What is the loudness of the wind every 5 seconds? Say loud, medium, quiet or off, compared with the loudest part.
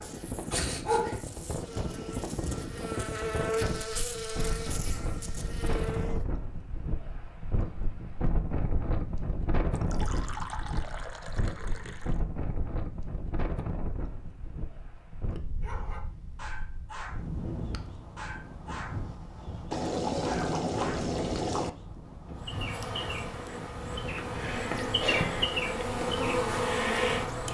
loud, loud, loud, medium, medium, medium.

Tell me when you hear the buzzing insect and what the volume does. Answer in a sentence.
The buzzing insect can be heard from 0.0 to 6.2 s, getting louder then quieter; and from 22.4 to 27.5 s, getting louder.